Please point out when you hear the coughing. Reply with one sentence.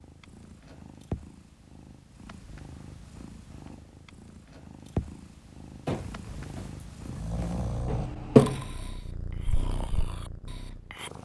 You can hear the coughing from 7.8 to 8.7 s.